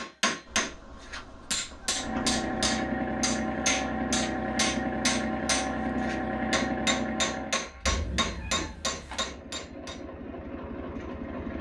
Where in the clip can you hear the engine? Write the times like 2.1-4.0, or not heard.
1.9-11.5.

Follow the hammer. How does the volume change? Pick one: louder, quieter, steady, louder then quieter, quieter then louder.
steady.